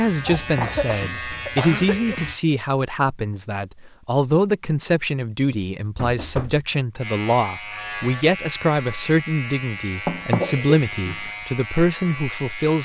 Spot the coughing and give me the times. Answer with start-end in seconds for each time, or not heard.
0.2-2.1, 10.3-10.8.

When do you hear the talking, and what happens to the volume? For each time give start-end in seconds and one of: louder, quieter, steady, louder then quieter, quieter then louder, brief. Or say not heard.
0.0-12.8 steady.